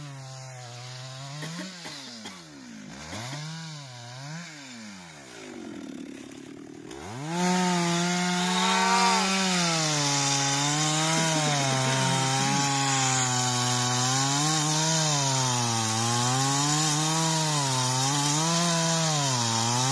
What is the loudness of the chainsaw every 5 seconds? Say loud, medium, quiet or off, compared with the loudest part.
quiet, loud, loud, loud.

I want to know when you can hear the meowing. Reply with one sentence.
You can hear the meowing from 8.3 to 9.3 s.